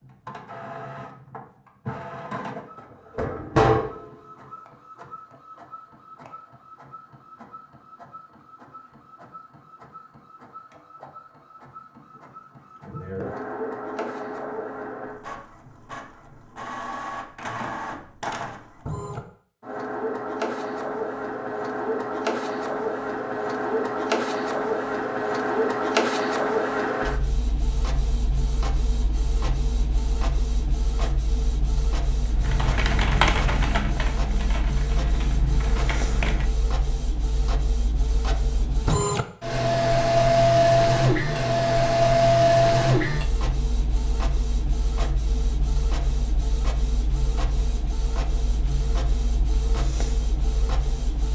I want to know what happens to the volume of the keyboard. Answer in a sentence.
The volume of the keyboard goes down.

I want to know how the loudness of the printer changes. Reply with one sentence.
The volume of the printer goes up.